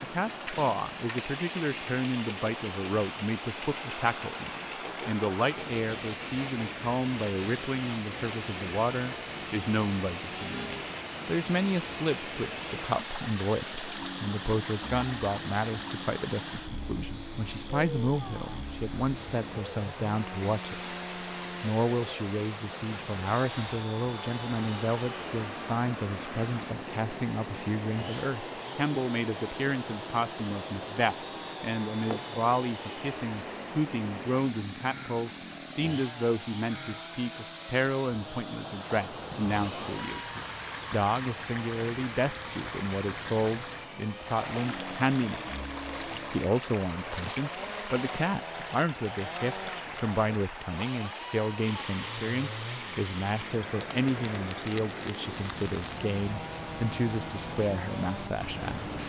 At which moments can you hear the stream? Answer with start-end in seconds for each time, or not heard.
0.0-59.0.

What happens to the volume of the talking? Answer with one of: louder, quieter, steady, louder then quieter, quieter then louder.
steady.